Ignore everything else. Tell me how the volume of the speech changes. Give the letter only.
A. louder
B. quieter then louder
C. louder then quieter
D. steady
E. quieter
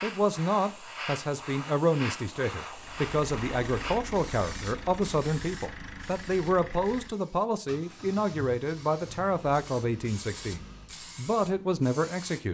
D.